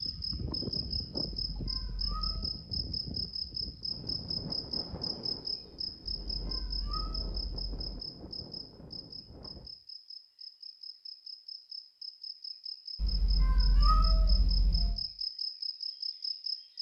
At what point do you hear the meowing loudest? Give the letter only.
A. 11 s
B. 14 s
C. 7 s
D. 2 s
B.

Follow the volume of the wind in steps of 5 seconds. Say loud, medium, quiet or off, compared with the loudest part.
loud, medium, off, off.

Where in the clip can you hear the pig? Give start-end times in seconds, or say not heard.
not heard.